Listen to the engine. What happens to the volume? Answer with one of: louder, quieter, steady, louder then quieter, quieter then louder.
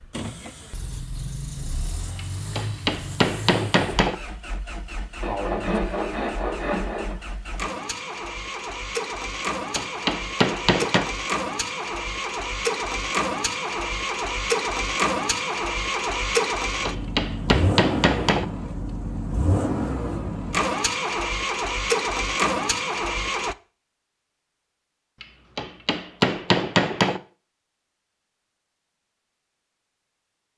louder.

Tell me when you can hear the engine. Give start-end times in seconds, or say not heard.
0.0-23.6.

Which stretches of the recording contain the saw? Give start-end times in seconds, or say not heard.
5.2-7.2.